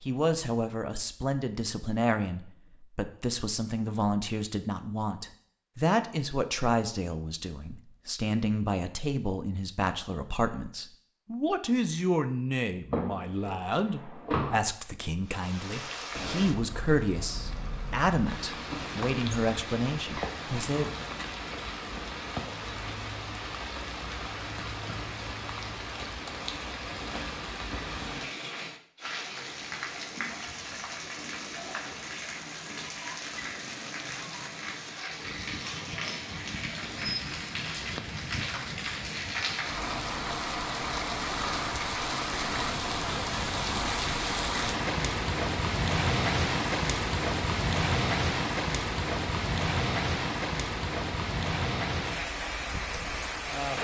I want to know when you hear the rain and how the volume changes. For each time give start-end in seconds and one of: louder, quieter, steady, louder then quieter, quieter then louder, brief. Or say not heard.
15.2-53.7 louder.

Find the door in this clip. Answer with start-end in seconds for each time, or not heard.
12.9-14.6.